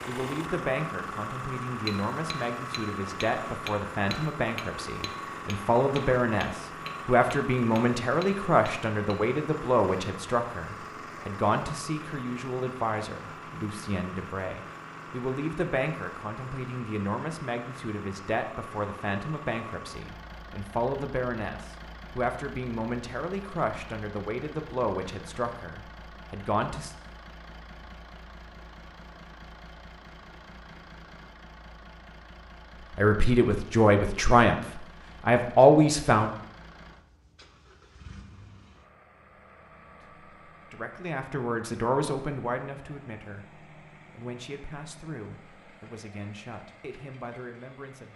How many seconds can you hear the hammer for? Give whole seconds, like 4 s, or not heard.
7 s.